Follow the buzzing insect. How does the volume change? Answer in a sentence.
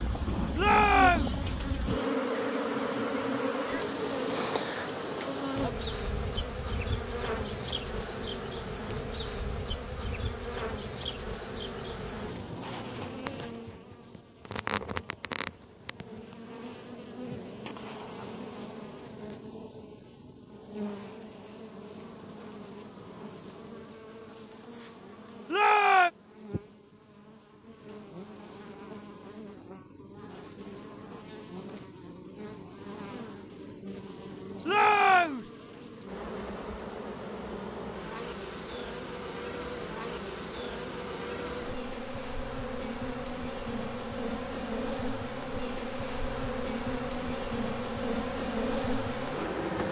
The loudness of the buzzing insect goes down, then up.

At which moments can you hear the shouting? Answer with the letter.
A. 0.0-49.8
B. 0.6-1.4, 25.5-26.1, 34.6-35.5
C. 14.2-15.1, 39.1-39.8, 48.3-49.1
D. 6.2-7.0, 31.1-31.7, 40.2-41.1
B.